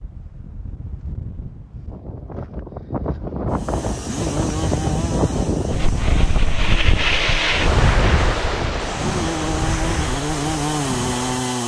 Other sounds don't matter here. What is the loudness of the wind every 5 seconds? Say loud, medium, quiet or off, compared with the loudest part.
medium, loud, medium.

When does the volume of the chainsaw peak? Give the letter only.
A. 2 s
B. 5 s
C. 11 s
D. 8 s
C.